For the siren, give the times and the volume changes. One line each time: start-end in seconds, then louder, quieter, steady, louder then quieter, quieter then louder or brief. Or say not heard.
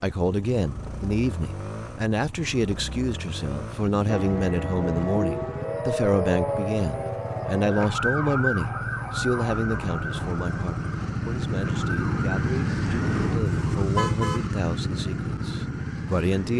4.0-13.8 quieter.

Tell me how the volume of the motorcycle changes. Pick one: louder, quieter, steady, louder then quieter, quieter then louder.
louder.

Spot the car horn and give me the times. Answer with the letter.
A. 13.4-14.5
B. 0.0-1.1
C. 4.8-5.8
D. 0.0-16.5
A.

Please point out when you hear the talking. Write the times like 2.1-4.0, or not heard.
0.0-16.5.